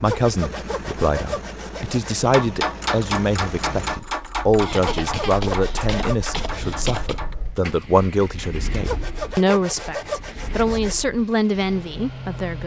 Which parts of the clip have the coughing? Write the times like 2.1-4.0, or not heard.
4.6-7.2.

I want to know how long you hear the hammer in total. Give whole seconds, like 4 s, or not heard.
5 s.